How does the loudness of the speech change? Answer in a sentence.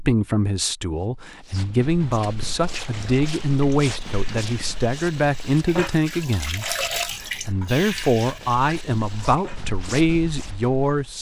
The loudness of the speech stays about the same.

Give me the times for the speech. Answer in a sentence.
The speech can be heard from 0.0 to 11.1 s.